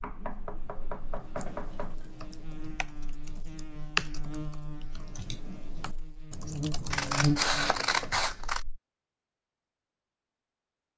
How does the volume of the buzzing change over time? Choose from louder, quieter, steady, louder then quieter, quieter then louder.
louder.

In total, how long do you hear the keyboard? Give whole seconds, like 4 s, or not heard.
7 s.